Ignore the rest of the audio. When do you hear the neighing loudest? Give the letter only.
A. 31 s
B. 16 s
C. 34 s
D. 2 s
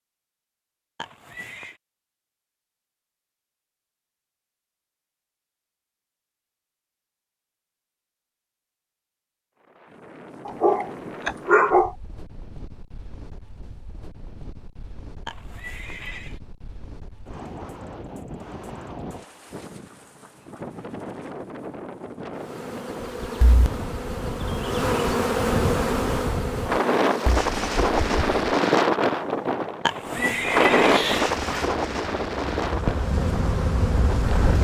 A.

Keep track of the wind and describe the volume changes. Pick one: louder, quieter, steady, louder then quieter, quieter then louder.
louder.